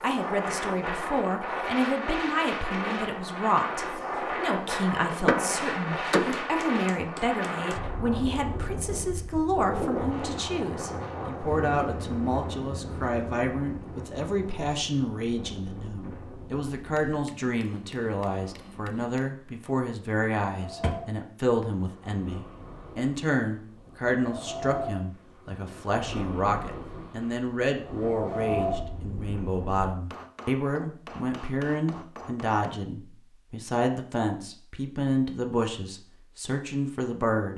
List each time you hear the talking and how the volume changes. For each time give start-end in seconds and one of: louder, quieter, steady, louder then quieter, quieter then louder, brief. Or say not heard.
0.0-37.5 steady.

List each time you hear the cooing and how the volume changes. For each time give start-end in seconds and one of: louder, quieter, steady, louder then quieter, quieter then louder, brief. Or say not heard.
not heard.